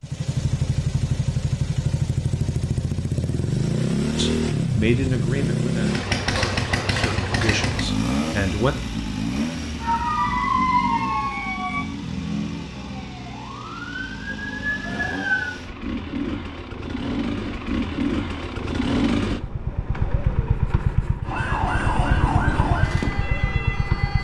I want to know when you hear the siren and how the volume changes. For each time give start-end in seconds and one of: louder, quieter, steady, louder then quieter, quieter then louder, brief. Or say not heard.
9.8-15.5 quieter then louder
21.2-24.1 brief.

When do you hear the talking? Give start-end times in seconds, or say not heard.
4.2-8.8.